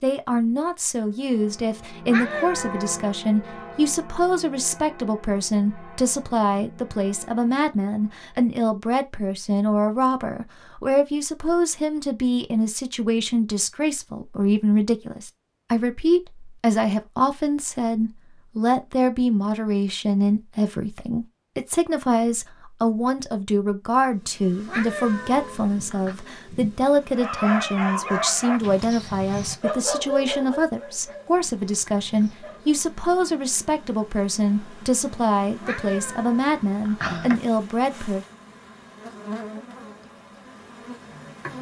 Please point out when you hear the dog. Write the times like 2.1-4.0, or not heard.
27.1-32.8.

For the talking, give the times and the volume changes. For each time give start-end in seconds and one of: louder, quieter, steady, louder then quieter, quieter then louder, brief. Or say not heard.
0.0-38.2 steady.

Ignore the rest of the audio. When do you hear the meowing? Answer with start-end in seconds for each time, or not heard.
2.0-3.1, 24.6-26.1, 35.6-37.4.